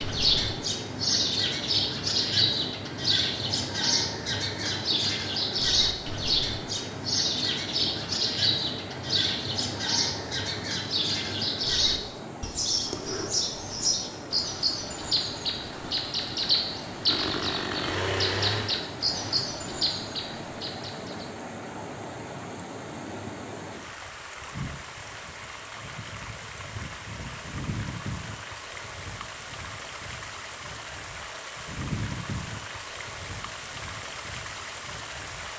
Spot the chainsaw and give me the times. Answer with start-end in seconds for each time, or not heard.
17.1-19.4.